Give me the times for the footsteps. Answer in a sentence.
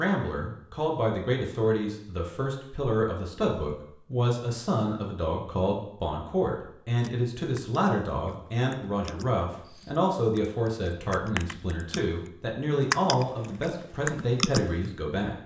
You can't hear the footsteps here.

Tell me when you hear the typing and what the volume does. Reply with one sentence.
The typing can be heard from 7.0 to 12.0 s, getting quieter then louder; and briefly from 12.7 to 14.7 s.